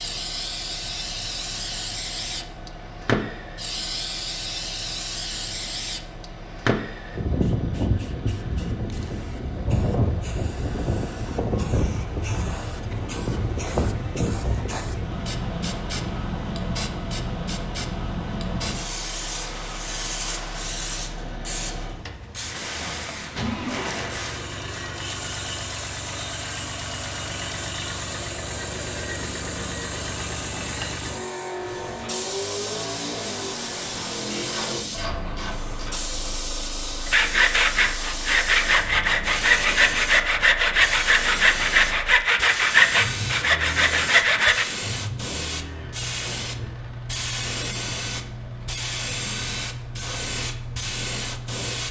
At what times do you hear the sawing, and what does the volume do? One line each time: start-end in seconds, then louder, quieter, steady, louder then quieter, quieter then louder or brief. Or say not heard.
37.0-44.6 steady.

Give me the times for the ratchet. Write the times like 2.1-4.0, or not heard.
34.3-36.0.